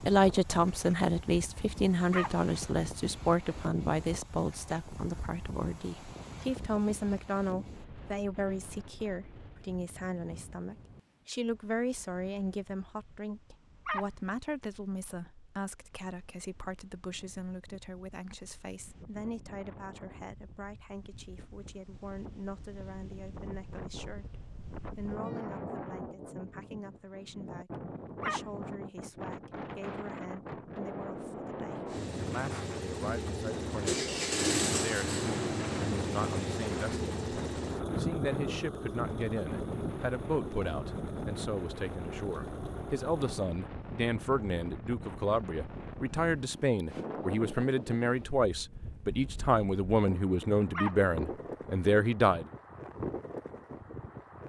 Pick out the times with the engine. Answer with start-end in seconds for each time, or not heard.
31.9-43.5.